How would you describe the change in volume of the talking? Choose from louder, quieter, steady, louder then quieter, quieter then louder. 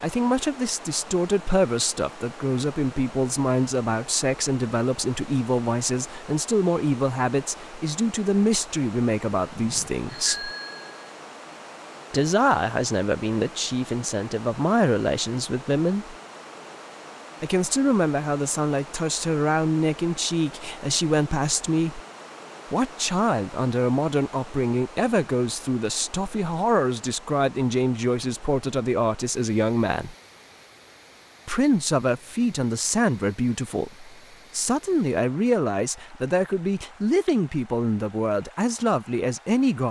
steady.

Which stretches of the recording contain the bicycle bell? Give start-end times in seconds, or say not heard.
9.6-11.1.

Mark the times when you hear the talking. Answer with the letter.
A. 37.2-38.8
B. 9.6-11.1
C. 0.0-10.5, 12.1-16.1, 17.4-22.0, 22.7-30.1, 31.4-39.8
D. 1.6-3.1
C.